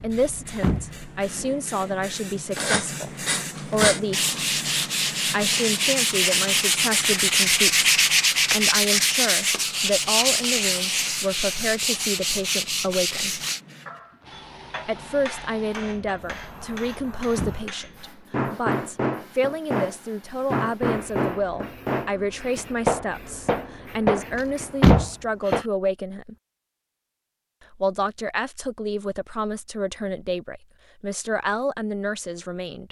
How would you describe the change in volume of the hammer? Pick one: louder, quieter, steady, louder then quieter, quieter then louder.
louder.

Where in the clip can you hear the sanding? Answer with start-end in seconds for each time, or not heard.
2.5-13.6.